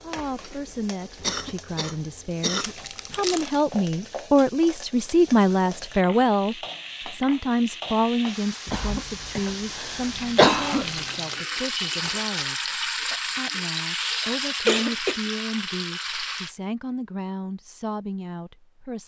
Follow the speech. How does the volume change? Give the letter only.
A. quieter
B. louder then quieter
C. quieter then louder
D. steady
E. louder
B.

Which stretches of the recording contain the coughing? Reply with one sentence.
You can hear the coughing from 1.2 to 2.8 s, from 8.7 to 10.8 s and from 14.2 to 15.2 s.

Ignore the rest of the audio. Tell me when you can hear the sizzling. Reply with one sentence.
The sizzling can be heard from 0.0 to 16.6 s.